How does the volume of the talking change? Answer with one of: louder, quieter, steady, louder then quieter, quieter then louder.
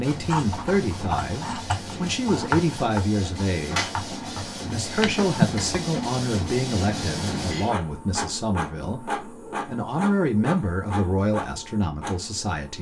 steady.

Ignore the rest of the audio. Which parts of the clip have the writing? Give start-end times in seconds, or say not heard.
0.1-5.9.